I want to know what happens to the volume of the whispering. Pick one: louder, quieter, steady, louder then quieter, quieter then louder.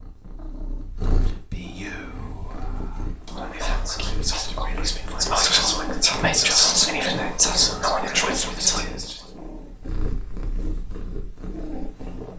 louder.